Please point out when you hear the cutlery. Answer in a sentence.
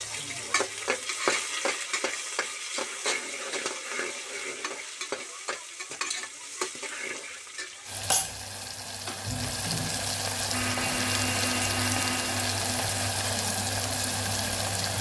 You can't hear the cutlery here.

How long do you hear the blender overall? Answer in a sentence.
You can hear the blender for 3 seconds altogether.